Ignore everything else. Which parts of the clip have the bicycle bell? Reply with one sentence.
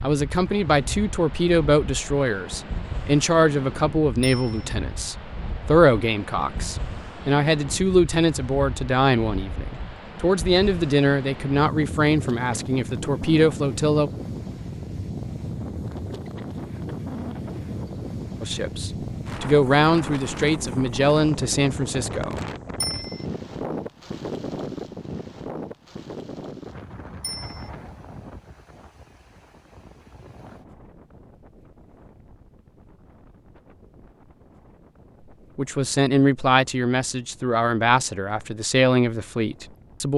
The bicycle bell can be heard from 4.2 to 4.7 s, from 22.8 to 23.2 s and from 27.2 to 27.7 s.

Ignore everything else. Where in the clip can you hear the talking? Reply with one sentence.
The talking can be heard from 0.0 to 14.1 s, from 18.4 to 22.9 s and from 35.5 to 40.1 s.